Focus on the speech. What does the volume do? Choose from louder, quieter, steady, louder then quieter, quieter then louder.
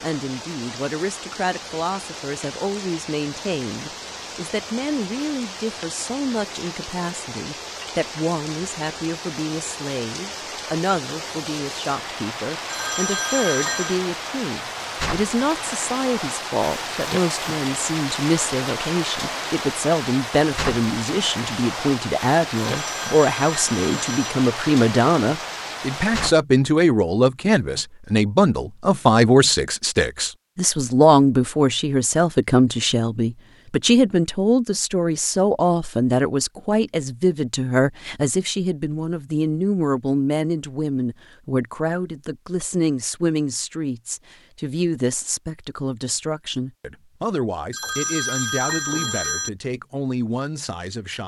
louder then quieter.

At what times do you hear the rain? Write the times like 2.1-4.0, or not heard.
0.0-26.4.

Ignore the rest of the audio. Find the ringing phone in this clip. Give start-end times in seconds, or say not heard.
12.7-14.0, 22.6-24.4, 47.7-49.5.